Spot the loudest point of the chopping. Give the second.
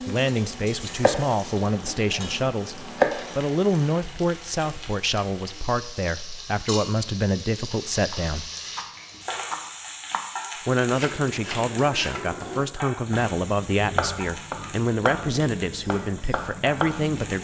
3 s.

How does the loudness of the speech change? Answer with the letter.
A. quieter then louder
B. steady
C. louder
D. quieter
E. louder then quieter
B.